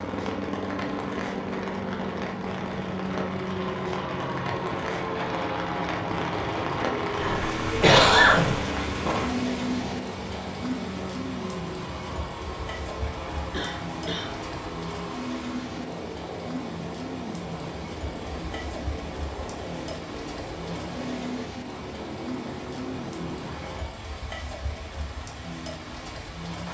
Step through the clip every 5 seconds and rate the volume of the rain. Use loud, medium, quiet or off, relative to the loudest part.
medium, loud, medium, medium, medium, medium.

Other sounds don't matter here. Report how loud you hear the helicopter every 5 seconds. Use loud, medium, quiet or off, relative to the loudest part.
loud, loud, medium, medium, medium, off.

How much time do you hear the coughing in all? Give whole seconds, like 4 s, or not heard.
2 s.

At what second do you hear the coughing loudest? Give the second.
8 s.